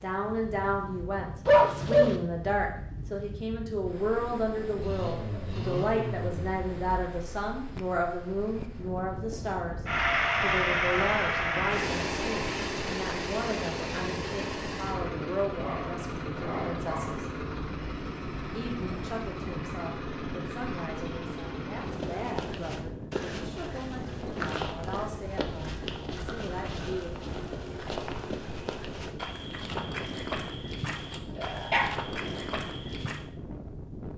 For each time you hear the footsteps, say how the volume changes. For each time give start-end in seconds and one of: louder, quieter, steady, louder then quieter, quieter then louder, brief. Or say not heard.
21.8-33.2 steady.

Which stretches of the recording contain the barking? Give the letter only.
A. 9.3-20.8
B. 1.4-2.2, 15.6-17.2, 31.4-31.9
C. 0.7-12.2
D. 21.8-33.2
B.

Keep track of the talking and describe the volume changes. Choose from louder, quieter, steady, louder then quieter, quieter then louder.
quieter.